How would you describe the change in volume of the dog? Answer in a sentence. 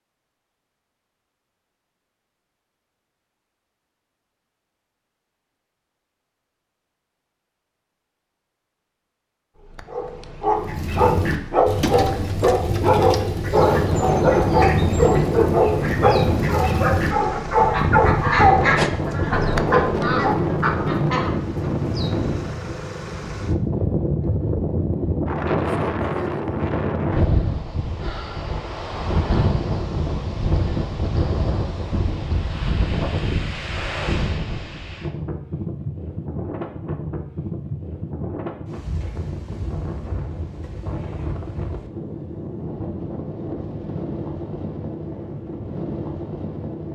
The volume of the dog stays about the same.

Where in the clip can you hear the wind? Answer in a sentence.
You can hear the wind from 13.5 to 46.8 s.